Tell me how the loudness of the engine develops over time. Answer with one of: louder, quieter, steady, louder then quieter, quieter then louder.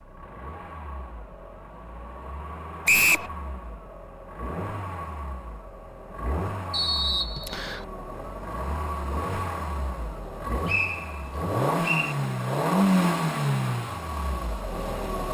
louder.